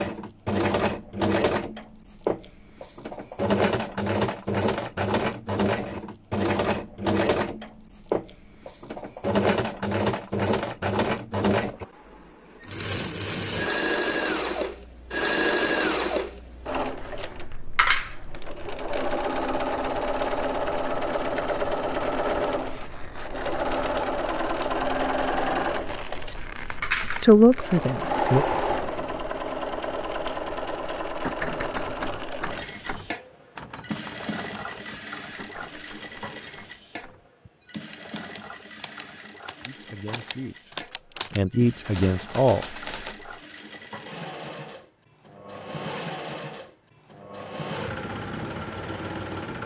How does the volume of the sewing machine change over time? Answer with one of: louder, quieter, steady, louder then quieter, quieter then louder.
quieter.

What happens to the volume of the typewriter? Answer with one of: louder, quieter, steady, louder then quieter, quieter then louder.
quieter then louder.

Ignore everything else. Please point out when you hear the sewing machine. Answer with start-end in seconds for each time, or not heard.
0.0-49.6.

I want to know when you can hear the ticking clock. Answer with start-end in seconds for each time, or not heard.
not heard.